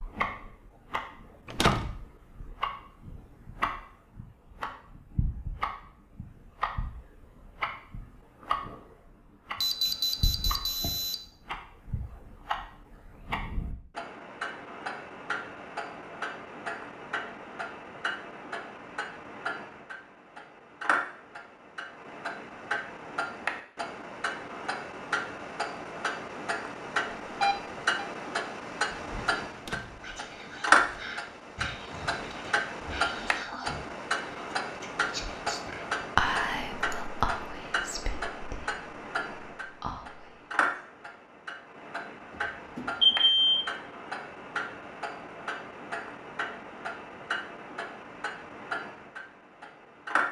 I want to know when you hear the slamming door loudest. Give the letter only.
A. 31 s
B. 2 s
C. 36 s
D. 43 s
B.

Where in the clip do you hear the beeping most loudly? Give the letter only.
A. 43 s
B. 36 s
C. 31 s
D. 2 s
A.